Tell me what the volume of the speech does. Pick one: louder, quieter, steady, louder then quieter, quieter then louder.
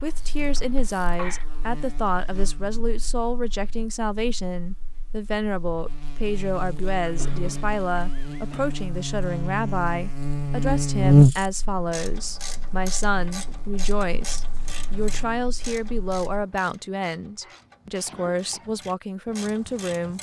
steady.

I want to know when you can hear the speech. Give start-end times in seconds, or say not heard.
0.0-20.1.